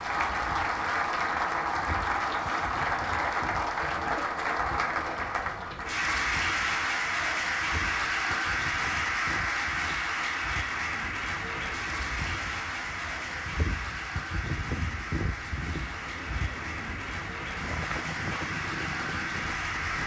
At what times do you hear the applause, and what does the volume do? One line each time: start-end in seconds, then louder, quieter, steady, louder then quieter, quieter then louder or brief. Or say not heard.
0.0-20.0 quieter.